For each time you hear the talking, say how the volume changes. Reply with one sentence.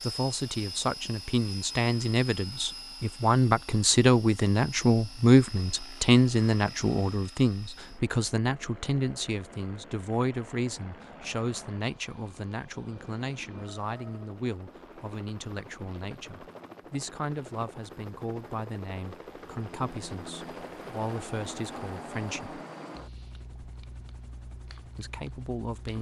The talking can be heard from 0.0 to 22.6 s, getting quieter; and briefly from 24.9 to 25.9 s.